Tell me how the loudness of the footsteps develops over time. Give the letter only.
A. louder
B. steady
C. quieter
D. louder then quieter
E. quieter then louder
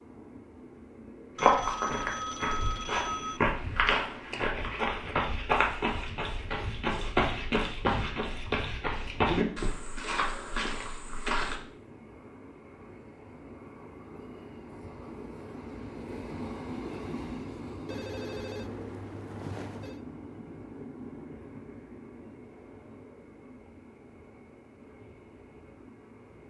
B.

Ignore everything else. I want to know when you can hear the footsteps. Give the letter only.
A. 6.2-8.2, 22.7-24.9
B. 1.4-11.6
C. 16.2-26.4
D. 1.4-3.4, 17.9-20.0
B.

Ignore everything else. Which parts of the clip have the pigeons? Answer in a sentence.
The pigeons can't be heard in this clip.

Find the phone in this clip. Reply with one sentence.
The phone can be heard from 1.4 to 3.4 s and from 17.9 to 20.0 s.